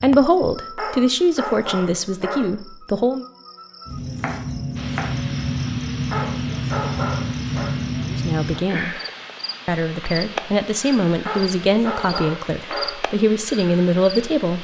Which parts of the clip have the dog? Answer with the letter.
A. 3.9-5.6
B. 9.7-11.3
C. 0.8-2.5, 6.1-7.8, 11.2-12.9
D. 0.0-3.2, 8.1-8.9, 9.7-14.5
C.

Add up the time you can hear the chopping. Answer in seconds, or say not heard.
2 s.